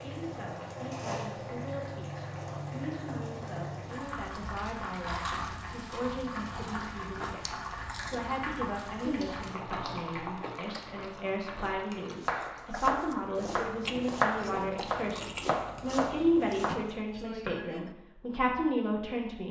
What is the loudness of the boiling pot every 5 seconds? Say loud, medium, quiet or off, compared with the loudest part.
loud, loud, medium, off.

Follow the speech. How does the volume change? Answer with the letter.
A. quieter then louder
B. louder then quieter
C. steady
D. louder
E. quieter
D.